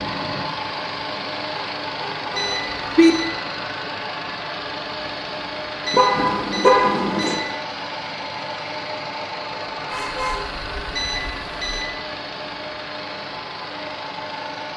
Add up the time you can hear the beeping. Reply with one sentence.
You can hear the beeping for 4 seconds altogether.